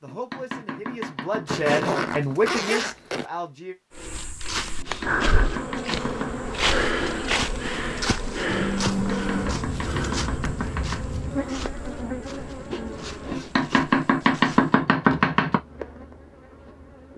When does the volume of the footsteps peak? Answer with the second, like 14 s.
7 s.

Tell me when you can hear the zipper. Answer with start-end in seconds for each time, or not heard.
1.4-3.2, 12.3-13.9.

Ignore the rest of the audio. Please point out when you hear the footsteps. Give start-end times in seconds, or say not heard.
4.0-14.8.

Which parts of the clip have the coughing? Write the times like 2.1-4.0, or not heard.
not heard.